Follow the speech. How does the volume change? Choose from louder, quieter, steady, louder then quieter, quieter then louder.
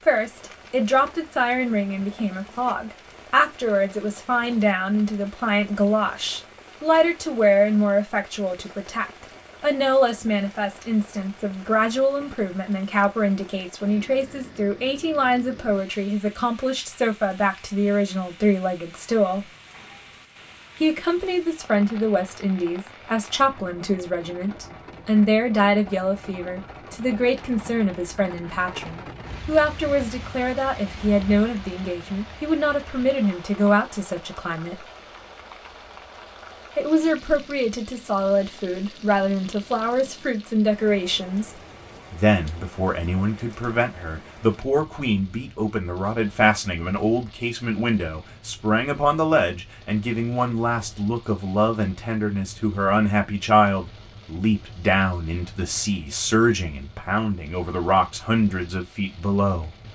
steady.